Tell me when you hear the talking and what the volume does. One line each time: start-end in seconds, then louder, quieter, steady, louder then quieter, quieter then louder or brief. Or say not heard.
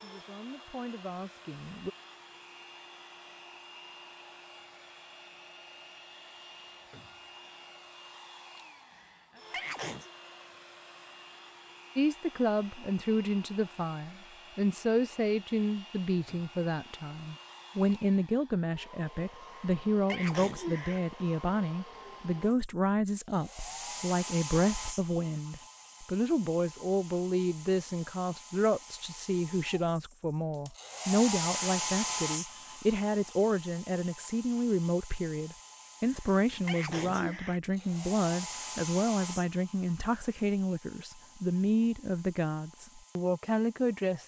0.0-1.9 brief
11.9-44.2 steady.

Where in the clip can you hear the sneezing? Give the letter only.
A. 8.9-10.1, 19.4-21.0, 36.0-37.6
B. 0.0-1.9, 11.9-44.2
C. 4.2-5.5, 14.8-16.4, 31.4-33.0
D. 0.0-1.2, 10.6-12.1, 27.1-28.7
A.